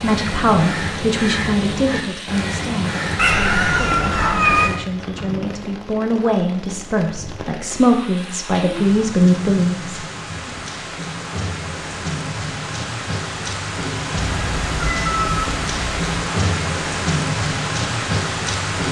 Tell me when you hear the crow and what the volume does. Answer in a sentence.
The crow can be heard from 0.0 to 4.8 s, at a steady volume.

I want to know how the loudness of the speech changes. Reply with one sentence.
The volume of the speech goes down, then up.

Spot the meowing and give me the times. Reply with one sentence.
You can hear the meowing from 3.1 to 4.7 s and from 14.2 to 16.2 s.